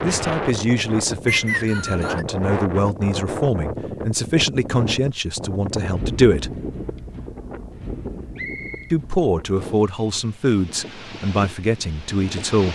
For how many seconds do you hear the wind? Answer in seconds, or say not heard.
13 s.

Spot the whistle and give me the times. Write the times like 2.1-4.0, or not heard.
1.2-2.2, 8.3-8.9.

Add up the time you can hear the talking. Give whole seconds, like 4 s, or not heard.
10 s.